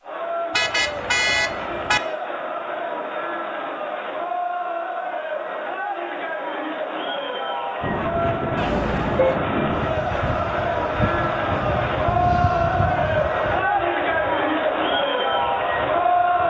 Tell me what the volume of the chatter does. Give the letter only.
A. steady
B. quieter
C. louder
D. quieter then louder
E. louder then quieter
C.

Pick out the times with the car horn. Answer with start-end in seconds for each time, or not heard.
0.5-2.0, 8.6-9.4.